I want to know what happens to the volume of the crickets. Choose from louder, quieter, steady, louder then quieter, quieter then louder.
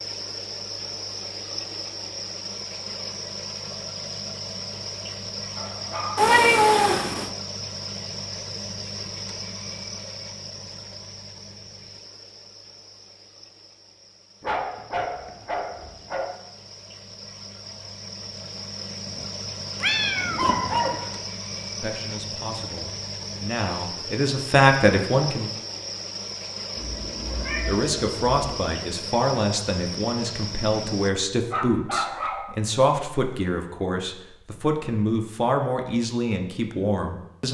quieter then louder.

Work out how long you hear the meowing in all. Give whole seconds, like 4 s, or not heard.
5 s.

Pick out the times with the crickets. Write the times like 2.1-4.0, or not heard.
0.0-31.1.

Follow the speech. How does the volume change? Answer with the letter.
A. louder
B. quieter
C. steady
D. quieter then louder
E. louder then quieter
C.